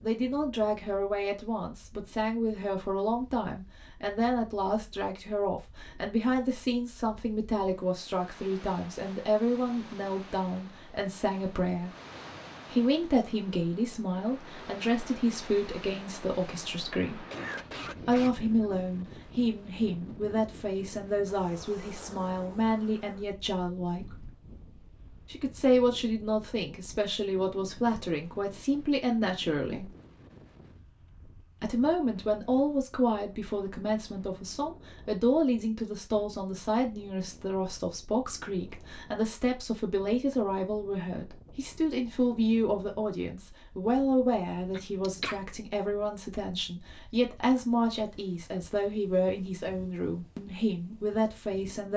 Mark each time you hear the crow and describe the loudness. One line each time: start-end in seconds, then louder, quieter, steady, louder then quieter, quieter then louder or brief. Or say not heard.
not heard.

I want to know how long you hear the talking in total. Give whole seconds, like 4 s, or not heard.
48 s.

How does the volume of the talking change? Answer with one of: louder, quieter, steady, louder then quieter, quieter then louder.
steady.